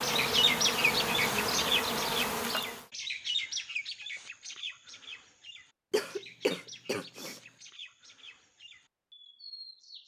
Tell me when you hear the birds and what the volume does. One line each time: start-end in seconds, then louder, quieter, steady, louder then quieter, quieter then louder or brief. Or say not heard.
0.0-10.0 quieter.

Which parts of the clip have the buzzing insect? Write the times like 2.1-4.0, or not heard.
0.0-2.9.